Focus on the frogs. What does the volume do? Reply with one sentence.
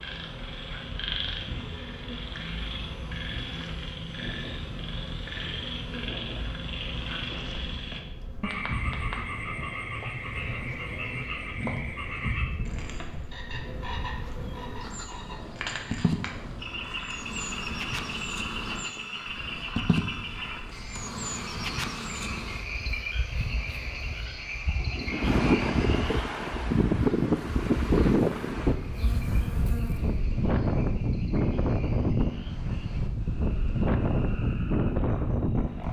The volume of the frogs goes down.